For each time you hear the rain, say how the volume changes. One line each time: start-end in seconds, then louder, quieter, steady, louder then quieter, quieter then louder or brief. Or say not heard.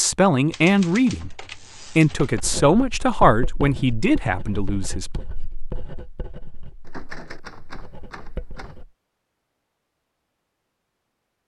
not heard.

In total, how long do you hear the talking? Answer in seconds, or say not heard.
5 s.